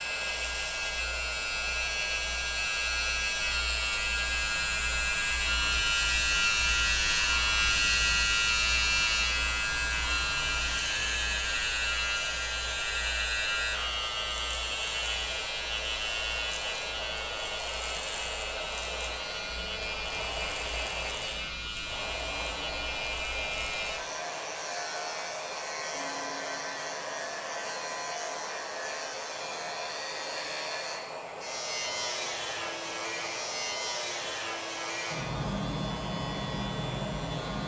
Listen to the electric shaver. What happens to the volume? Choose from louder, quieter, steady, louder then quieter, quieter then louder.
quieter.